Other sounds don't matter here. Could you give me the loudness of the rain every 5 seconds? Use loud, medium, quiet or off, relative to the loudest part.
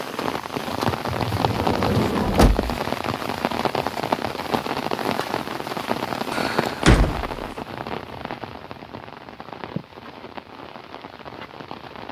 loud, loud, quiet.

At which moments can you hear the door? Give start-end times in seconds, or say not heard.
1.1-2.8, 6.3-7.5.